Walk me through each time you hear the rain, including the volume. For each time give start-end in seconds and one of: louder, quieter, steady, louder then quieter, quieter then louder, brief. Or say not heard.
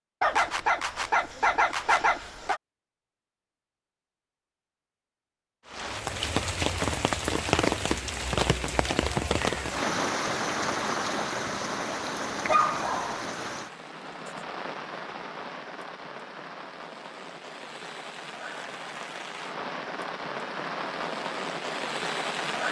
5.7-22.6 quieter then louder.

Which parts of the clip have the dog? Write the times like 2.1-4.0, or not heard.
0.2-2.6, 12.4-13.2.